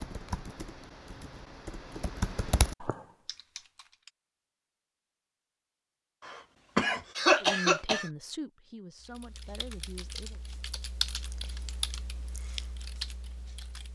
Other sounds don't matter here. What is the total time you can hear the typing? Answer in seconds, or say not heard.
9 s.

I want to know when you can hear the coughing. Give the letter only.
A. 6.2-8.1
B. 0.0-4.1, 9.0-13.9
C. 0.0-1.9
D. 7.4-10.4
A.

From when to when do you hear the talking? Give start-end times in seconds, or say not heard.
7.4-10.4.